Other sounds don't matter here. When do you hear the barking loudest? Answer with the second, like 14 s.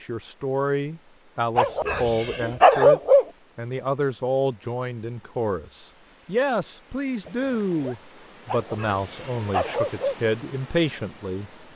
3 s.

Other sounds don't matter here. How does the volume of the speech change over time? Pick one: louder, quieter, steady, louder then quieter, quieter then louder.
steady.